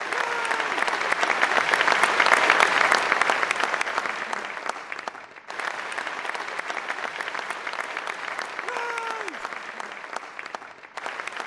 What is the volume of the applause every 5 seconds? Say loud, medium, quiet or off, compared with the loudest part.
loud, medium, quiet.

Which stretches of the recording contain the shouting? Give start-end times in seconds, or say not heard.
0.1-0.7, 8.6-9.4.